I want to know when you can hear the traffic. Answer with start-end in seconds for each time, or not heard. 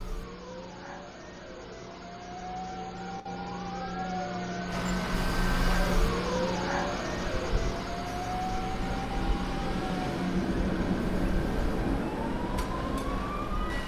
4.7-13.8.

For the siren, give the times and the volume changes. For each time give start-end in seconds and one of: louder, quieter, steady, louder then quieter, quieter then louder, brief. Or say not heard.
0.0-13.8 louder then quieter.